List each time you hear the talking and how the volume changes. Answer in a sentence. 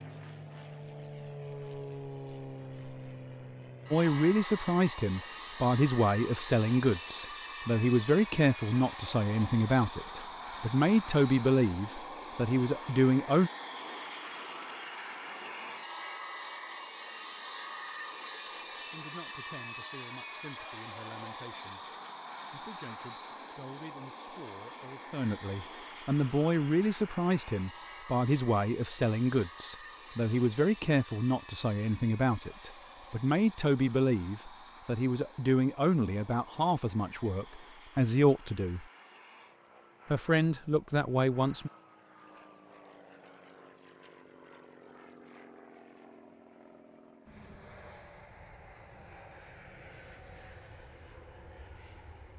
The talking can be heard from 3.9 to 13.5 s, at a steady volume; from 18.9 to 38.9 s, getting louder; and briefly from 40.1 to 41.7 s.